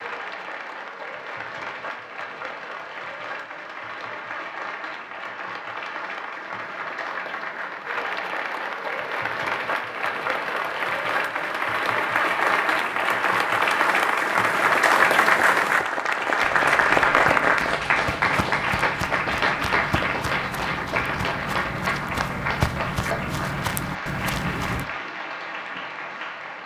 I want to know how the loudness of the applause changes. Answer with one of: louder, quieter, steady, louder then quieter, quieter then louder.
louder then quieter.